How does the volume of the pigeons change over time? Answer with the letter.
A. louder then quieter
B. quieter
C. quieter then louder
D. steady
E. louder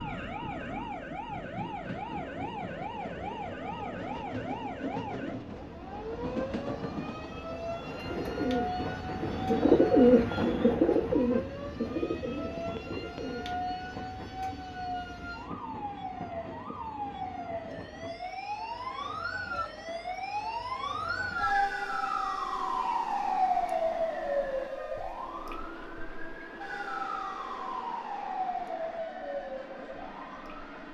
A.